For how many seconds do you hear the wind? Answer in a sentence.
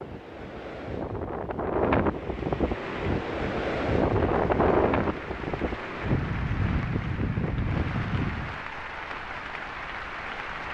The wind can be heard for 9 seconds in total.